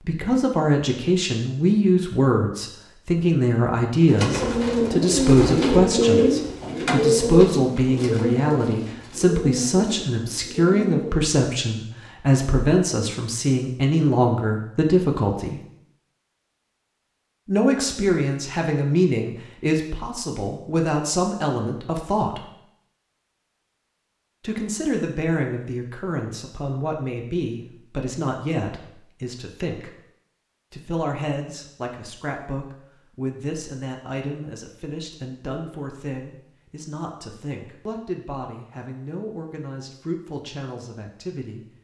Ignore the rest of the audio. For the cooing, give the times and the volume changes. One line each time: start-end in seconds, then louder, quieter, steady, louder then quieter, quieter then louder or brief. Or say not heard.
4.1-11.2 quieter.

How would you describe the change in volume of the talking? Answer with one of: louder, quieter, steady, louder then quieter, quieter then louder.
quieter.